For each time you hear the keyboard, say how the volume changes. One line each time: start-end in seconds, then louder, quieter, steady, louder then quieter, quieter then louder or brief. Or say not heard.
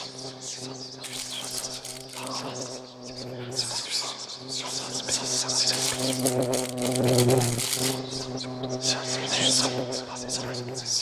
not heard.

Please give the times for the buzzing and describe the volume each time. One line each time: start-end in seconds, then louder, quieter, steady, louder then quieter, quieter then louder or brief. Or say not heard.
0.0-10.9 louder then quieter.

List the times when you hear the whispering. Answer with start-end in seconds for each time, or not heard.
0.0-6.2, 7.8-10.9.